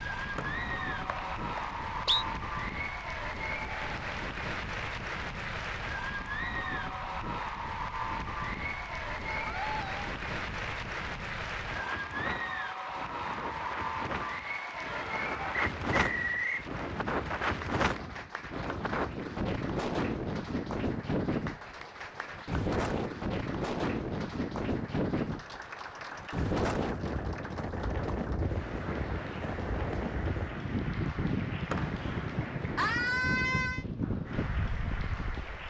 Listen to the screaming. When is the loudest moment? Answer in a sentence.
The loudest moment of the screaming is at 33 seconds.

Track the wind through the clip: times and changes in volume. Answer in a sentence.
You can hear the wind from 0.0 to 35.6 s, getting louder.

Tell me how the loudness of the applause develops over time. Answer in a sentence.
The volume of the applause goes down.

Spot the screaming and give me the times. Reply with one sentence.
You can hear the screaming from 9.3 to 10.0 s, from 14.8 to 15.6 s and from 32.8 to 33.9 s.